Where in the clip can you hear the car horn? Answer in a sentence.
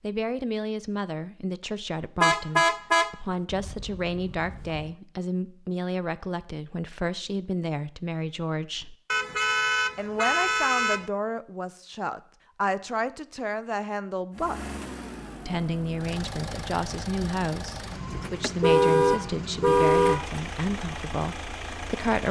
You can hear the car horn from 2.2 to 4.9 s, from 9.1 to 11.1 s and from 18.1 to 20.4 s.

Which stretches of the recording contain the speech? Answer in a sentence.
The speech can be heard from 0.0 to 8.9 s, from 9.9 to 14.7 s and from 15.4 to 22.2 s.